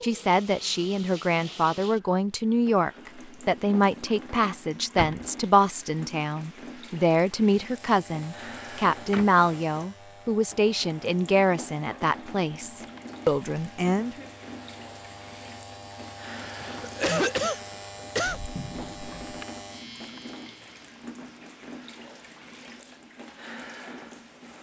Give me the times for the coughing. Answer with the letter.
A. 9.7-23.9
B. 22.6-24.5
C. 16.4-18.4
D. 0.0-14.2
C.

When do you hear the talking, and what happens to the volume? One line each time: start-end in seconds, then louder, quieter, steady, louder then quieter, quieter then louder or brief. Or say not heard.
0.0-14.2 steady.